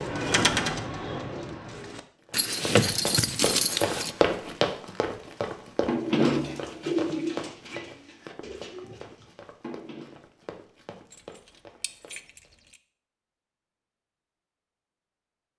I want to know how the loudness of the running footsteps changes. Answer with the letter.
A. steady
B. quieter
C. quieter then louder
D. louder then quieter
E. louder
B.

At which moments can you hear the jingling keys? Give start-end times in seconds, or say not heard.
2.3-4.1, 11.1-12.8.